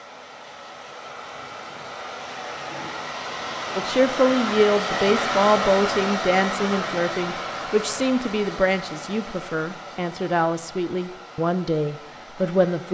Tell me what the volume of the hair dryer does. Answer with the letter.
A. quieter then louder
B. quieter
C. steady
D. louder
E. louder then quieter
E.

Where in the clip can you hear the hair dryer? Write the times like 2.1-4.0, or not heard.
0.0-12.9.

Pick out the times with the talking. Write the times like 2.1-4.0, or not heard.
3.8-12.9.